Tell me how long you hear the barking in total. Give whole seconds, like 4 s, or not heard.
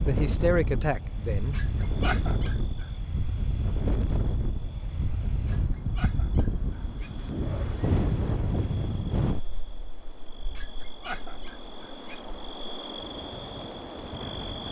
5 s.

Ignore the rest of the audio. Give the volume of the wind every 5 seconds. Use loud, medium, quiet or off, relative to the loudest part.
loud, loud, quiet.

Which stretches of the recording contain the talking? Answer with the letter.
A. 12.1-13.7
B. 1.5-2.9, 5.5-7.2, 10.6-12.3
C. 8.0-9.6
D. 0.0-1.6
D.